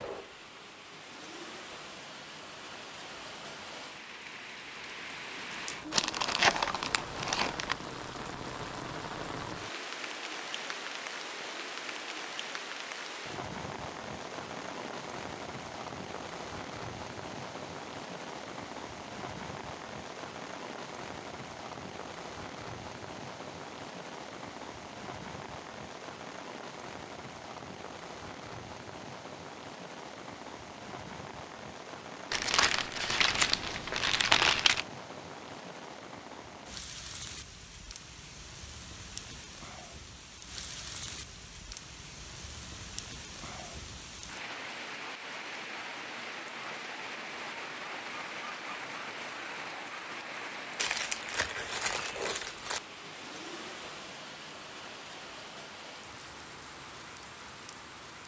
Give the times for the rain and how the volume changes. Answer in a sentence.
You can hear the rain from 0.0 to 58.2 s, at a steady volume.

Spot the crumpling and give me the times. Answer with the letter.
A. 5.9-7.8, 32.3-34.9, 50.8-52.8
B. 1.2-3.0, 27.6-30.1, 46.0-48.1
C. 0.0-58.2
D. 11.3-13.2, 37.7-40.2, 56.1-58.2
A.